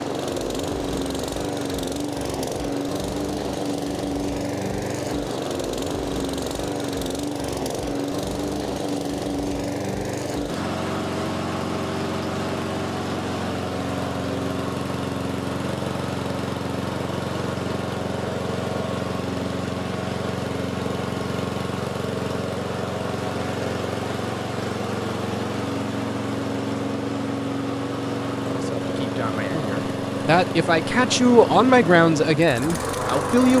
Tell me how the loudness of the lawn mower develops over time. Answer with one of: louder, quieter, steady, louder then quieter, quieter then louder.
steady.